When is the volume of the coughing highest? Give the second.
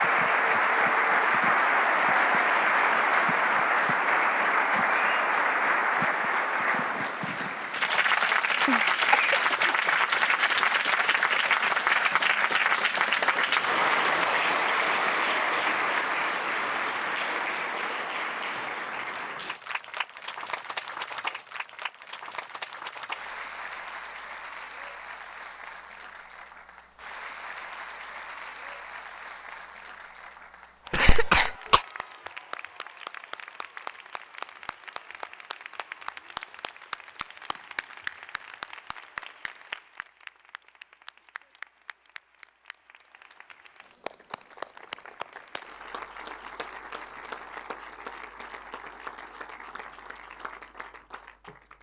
31 s.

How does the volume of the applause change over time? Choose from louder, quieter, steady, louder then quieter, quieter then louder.
quieter.